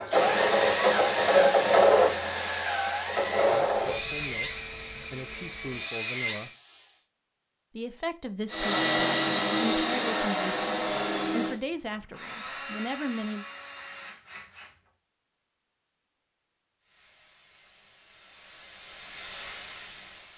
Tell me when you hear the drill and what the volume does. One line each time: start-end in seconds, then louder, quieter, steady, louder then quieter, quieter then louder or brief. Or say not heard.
0.0-6.5 quieter
8.5-14.9 quieter.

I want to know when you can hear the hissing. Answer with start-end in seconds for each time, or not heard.
0.0-7.0, 16.8-20.3.